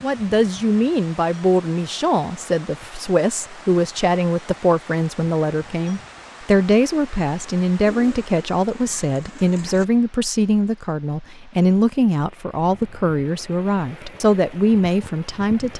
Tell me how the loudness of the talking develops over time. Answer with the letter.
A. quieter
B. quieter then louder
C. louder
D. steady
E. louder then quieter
D.